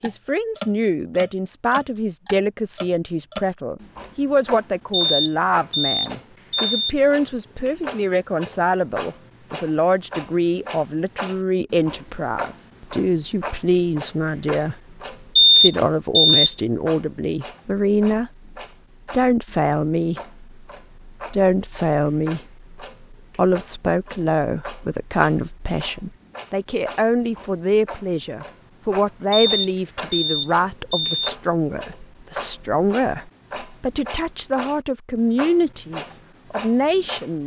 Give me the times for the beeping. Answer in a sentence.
You can hear the beeping from 4.9 to 7.0 s, from 15.3 to 16.5 s and from 29.4 to 31.1 s.